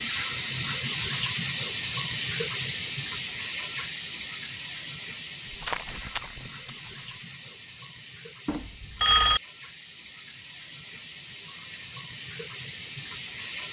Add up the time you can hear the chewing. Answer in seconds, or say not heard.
2 s.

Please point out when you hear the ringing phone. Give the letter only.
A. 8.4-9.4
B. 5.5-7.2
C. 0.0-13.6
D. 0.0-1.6
A.